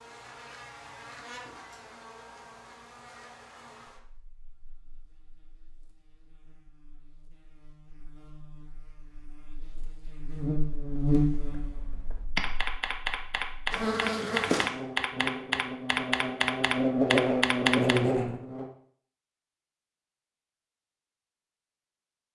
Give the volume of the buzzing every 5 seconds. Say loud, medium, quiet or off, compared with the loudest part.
quiet, quiet, loud, loud, off.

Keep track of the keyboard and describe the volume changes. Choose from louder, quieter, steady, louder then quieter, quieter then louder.
louder.